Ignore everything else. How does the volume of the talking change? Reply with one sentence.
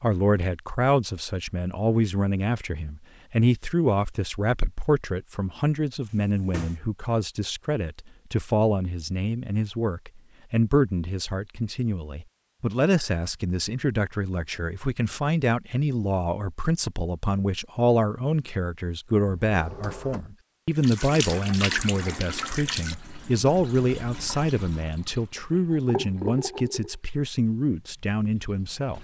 The loudness of the talking stays about the same.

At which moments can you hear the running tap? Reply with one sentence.
You can hear the running tap from 20.8 to 28.9 s.